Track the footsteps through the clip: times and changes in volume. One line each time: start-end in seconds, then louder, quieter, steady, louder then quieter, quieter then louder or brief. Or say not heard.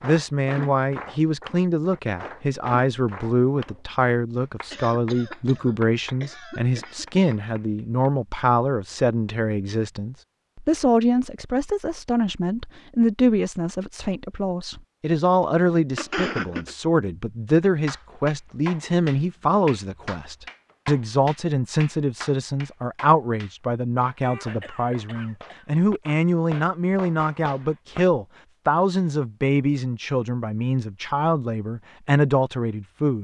not heard.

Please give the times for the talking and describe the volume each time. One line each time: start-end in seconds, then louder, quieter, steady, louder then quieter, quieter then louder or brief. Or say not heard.
0.0-33.2 steady.